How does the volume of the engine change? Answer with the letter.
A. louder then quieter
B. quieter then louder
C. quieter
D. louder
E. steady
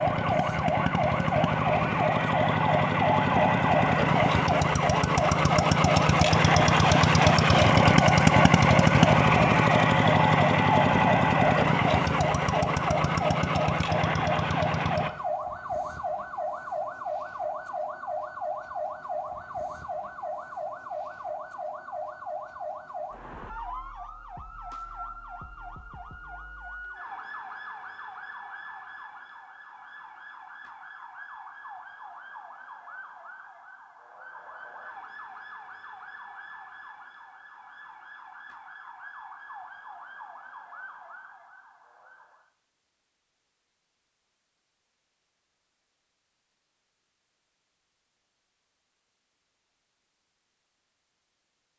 A.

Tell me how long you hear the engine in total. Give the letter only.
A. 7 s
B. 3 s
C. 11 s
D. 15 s
D.